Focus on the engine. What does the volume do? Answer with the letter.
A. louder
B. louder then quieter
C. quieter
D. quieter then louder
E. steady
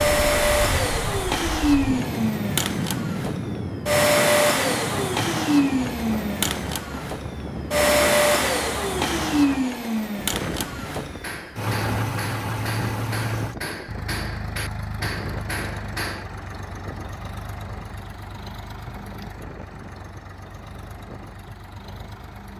C.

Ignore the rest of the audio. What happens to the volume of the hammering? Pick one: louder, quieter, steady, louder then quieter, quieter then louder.
steady.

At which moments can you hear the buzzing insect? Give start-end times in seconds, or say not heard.
not heard.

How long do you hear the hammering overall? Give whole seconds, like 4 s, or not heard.
5 s.